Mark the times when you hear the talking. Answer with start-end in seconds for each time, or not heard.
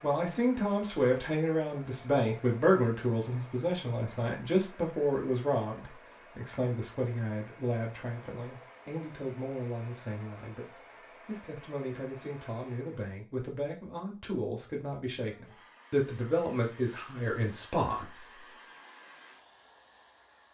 0.0-18.4.